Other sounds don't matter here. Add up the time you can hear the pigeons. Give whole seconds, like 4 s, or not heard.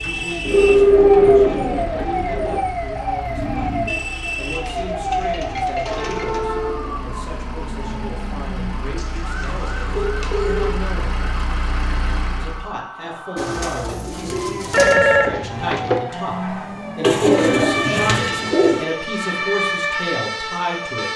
9 s.